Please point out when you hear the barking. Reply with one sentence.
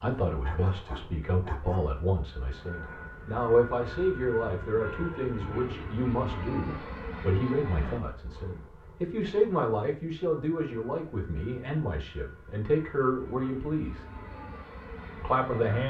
You can hear the barking from 0.4 to 1.9 s.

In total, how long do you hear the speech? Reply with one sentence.
The speech can be heard for 15 seconds in total.